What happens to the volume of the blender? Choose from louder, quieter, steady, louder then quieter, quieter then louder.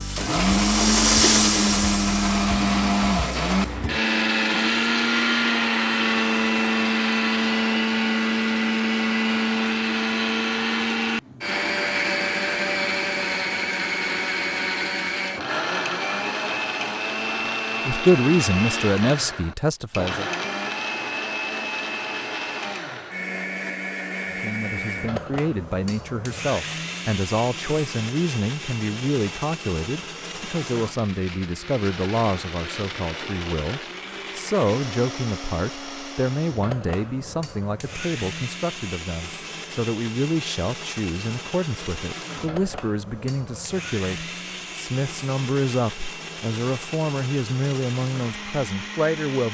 quieter.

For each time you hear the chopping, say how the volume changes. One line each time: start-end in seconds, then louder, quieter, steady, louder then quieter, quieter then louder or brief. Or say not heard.
not heard.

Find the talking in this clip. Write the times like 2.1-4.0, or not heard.
17.9-20.3, 24.3-49.4.